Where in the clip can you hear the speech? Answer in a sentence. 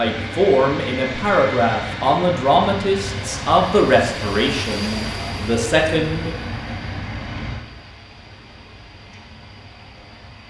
The speech can be heard from 0.0 to 6.3 s.